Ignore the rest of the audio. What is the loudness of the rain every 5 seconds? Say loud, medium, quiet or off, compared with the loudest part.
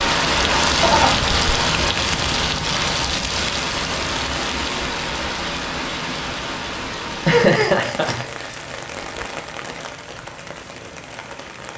loud, medium, quiet.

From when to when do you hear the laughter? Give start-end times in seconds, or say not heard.
0.8-1.3, 7.1-8.6.